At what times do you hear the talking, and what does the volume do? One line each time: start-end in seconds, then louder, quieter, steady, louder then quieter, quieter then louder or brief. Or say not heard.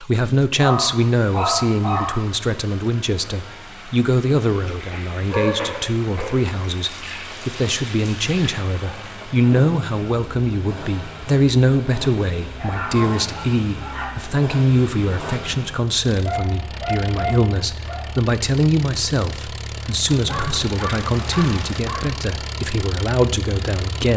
0.0-24.1 steady.